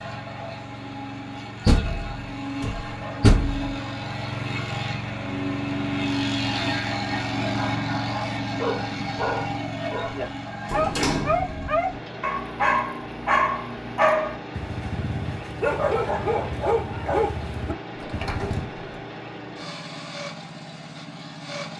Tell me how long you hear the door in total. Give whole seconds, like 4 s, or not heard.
4 s.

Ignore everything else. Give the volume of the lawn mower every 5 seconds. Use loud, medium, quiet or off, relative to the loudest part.
medium, loud, medium, medium, medium.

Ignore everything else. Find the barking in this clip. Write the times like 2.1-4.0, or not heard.
7.5-18.6.